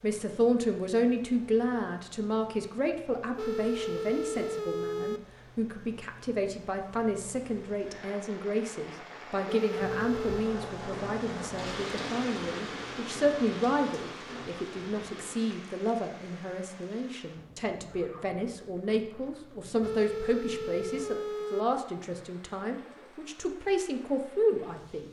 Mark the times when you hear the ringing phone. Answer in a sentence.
The ringing phone can be heard from 3.4 to 5.2 s, from 9.4 to 10.5 s and from 19.8 to 21.6 s.